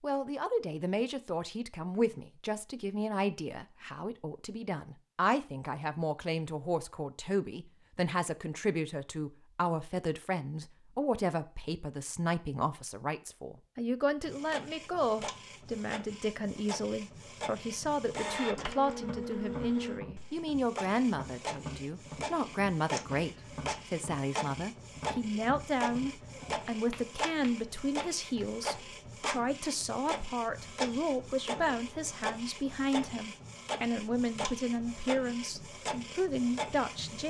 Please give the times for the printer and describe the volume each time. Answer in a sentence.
The printer can be heard from 14.2 to 37.2 s, at a steady volume.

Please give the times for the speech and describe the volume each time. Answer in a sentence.
You can hear the speech from 0.0 to 37.2 s, at a steady volume.